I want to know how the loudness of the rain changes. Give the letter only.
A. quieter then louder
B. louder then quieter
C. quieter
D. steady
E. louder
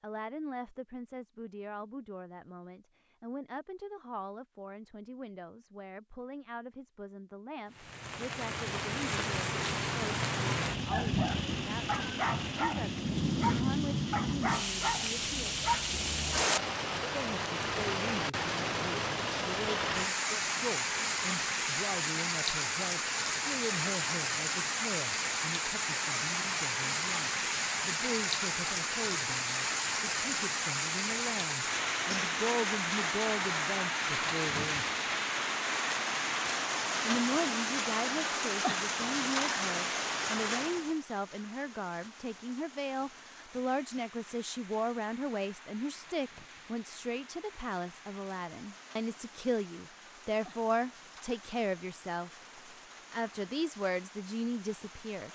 C.